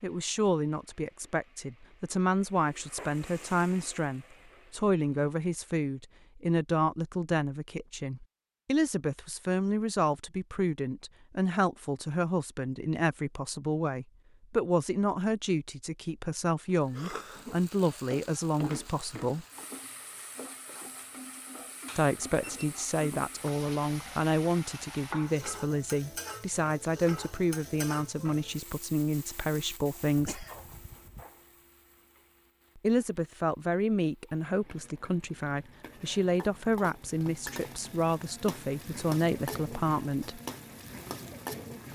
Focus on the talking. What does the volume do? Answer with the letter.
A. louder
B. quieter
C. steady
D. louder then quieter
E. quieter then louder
C.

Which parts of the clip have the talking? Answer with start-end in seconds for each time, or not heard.
0.0-19.4, 21.9-30.4, 32.8-40.4.